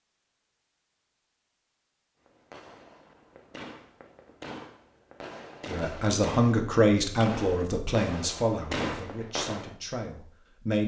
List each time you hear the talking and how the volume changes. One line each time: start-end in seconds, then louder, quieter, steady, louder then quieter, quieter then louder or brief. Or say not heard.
5.7-10.8 quieter.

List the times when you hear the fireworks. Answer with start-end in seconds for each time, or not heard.
2.2-9.8.